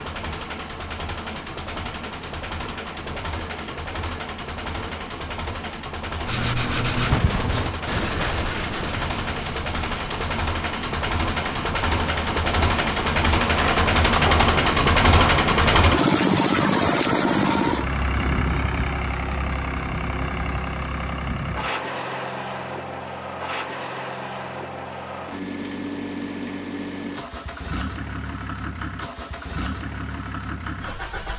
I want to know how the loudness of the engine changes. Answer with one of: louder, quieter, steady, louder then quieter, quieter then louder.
louder then quieter.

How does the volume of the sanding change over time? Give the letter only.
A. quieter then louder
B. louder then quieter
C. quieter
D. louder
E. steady
C.